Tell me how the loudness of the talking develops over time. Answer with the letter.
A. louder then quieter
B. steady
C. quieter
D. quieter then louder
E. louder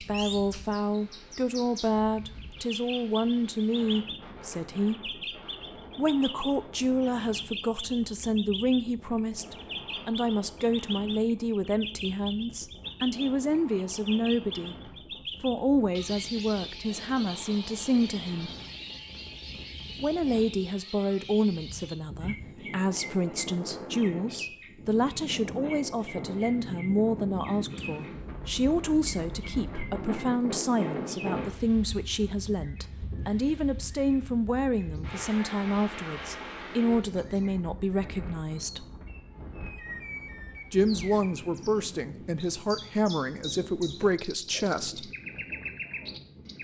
B.